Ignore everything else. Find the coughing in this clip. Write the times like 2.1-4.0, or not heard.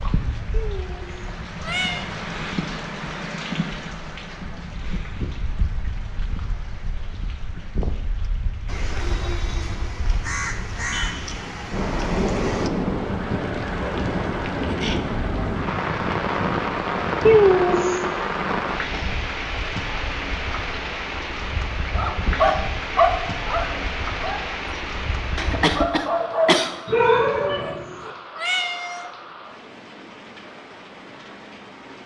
25.4-26.8.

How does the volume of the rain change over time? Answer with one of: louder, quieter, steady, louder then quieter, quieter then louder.
louder then quieter.